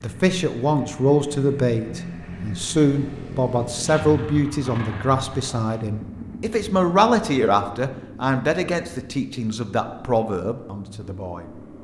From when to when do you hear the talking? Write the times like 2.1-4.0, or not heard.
0.0-11.4.